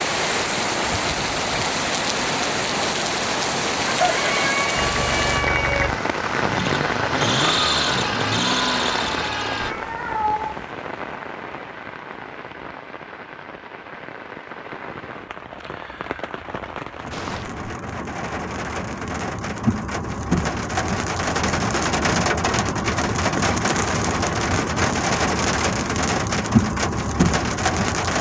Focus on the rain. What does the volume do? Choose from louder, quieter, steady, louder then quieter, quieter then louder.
quieter then louder.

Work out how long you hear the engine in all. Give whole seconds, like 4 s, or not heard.
5 s.